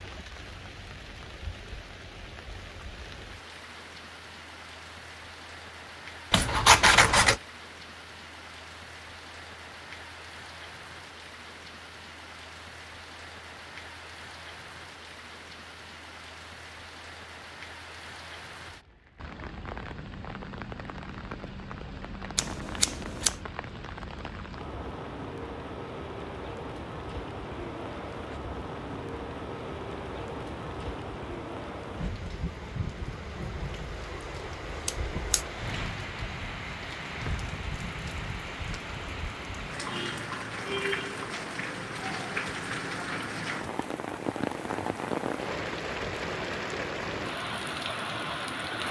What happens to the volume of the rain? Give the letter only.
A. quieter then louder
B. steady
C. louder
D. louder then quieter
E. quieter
C.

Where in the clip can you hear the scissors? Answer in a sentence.
The scissors can be heard from 6.3 to 7.4 s, from 22.4 to 23.4 s and from 34.9 to 35.5 s.